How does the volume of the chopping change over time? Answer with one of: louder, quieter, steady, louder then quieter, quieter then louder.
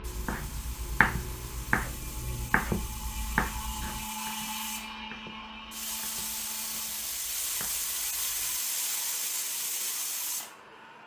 quieter.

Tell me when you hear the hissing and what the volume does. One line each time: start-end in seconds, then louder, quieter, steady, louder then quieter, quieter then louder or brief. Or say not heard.
0.0-11.0 louder.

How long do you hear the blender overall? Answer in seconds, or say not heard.
11 s.